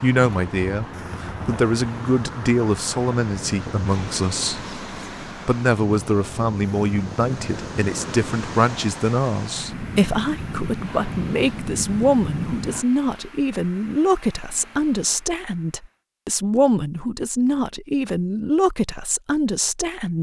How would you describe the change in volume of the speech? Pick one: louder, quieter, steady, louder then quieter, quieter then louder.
steady.